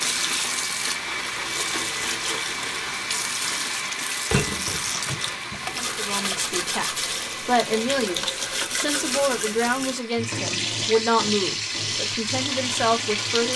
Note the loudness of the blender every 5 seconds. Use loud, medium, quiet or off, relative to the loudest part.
loud, medium, medium.